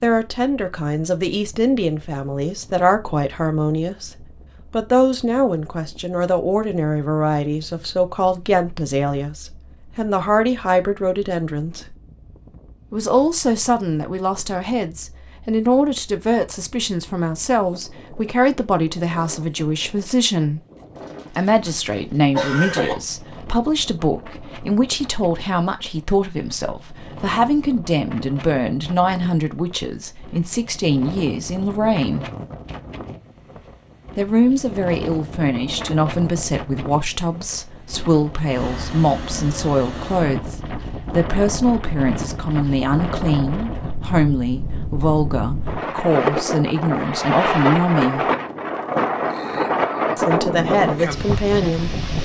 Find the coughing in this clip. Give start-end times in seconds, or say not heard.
20.9-22.9.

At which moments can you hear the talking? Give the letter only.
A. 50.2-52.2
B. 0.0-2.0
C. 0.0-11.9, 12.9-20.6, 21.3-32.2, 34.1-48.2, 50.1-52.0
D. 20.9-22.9
C.